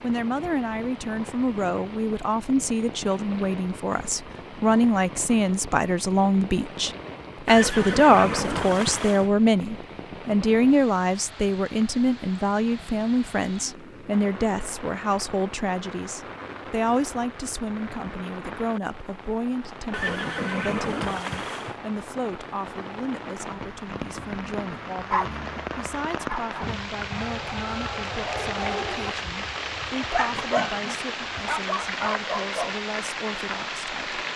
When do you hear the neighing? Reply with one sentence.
You can hear the neighing from 7.5 to 9.3 s and from 19.9 to 21.8 s.